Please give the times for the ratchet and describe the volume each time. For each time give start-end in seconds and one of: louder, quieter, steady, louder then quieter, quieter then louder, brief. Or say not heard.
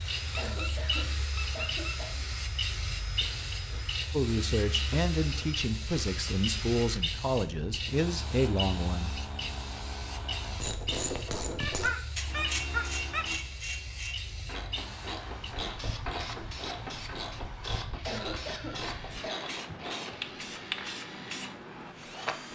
10.6-20.2 quieter.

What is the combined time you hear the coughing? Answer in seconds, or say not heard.
3 s.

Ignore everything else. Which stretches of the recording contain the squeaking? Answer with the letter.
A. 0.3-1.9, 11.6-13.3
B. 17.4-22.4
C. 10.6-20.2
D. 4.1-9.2
A.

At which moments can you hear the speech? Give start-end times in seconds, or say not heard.
4.1-9.2.